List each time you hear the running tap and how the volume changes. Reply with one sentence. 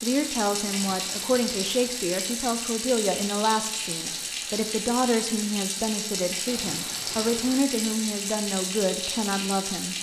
You can hear the running tap from 0.0 to 9.9 s, at a steady volume.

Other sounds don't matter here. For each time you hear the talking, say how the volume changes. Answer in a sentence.
You can hear the talking from 0.0 to 9.9 s, at a steady volume.